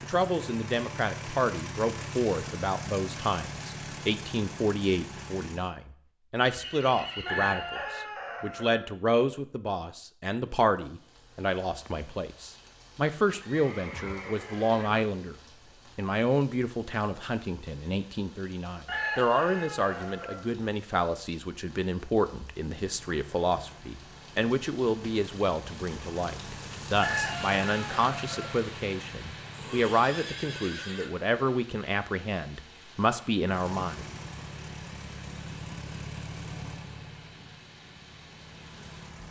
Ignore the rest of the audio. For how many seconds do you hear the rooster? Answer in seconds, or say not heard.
5 s.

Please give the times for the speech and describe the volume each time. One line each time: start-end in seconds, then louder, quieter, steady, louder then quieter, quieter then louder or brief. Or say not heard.
0.0-15.3 steady
15.9-34.0 steady.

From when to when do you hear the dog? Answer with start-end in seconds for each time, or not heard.
not heard.